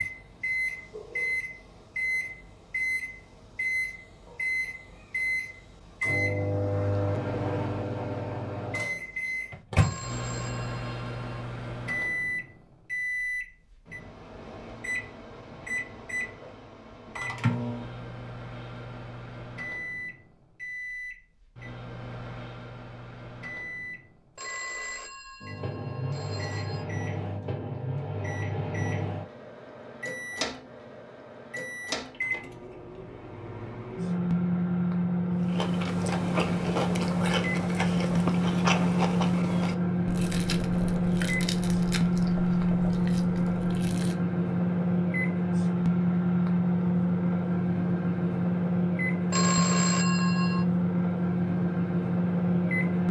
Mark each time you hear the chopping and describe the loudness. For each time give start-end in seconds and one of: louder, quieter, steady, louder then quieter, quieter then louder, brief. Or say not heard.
not heard.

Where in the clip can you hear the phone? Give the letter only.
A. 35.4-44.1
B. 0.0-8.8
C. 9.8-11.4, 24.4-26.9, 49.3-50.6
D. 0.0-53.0
C.